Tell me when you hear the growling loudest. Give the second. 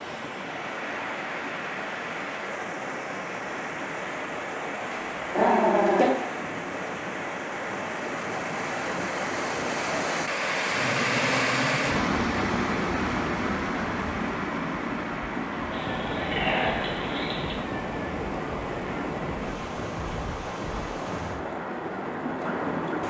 6 s.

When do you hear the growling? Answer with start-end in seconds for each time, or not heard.
4.9-6.1, 10.7-11.9, 15.7-17.6.